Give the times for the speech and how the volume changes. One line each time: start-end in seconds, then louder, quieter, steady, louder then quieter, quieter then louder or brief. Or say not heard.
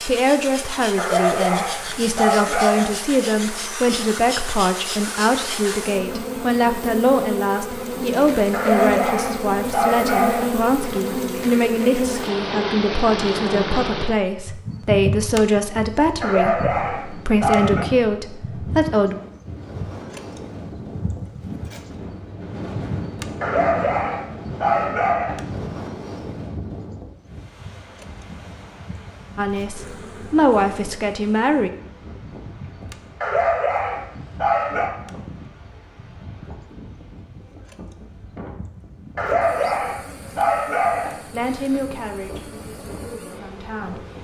0.1-19.2 steady
29.4-31.7 brief
41.3-44.0 brief.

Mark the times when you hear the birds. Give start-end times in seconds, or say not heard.
not heard.